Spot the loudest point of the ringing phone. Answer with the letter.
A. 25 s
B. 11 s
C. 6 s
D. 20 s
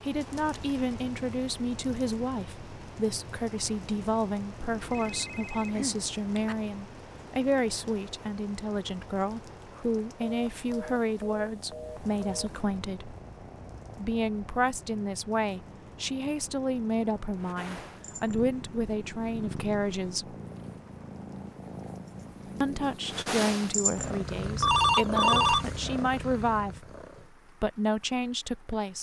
A.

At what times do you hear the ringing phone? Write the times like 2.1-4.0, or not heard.
4.8-6.5, 10.2-12.7, 24.4-25.7.